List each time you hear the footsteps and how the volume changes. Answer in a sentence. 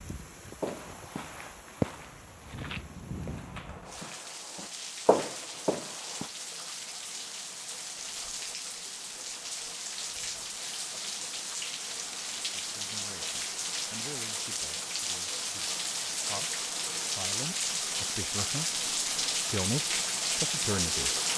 You can hear the footsteps from 0.6 to 6.2 s, getting quieter then louder.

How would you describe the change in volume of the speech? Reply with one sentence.
The loudness of the speech goes up.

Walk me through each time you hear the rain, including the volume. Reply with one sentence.
The rain can be heard from 0.0 to 21.3 s, getting louder.